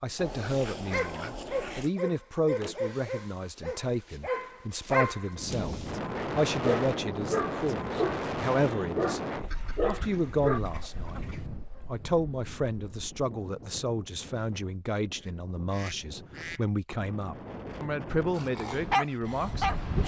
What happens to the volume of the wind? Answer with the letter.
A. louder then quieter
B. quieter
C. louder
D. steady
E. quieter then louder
E.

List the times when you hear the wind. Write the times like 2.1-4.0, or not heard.
5.3-20.0.